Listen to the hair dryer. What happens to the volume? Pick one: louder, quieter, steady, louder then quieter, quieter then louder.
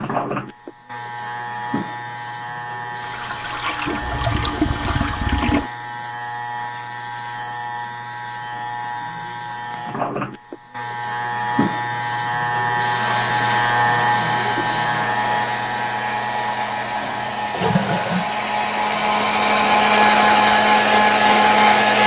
louder.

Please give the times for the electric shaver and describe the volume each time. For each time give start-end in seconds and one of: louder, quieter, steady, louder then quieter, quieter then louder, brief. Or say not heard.
0.0-22.0 louder then quieter.